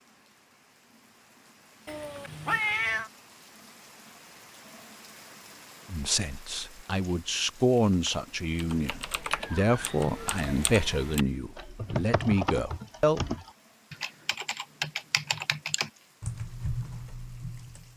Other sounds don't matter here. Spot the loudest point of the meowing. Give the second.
3 s.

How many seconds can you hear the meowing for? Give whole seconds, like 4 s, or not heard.
2 s.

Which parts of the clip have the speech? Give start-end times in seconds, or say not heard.
5.9-13.2.